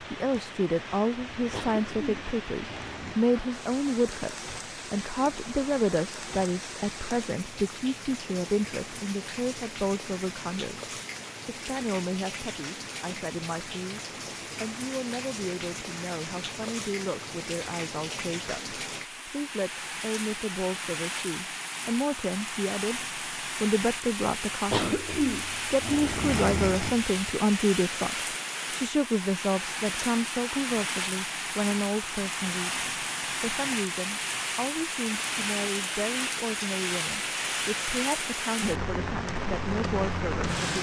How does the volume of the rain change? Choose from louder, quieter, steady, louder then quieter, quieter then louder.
louder.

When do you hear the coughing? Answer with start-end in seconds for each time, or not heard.
1.5-3.1, 24.7-27.1.